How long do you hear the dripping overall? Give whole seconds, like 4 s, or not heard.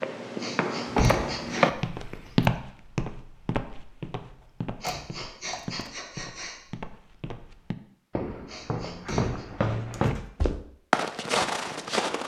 not heard.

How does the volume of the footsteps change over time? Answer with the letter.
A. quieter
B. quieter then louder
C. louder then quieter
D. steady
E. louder
B.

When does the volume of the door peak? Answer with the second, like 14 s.
1 s.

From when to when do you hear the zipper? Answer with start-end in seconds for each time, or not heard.
not heard.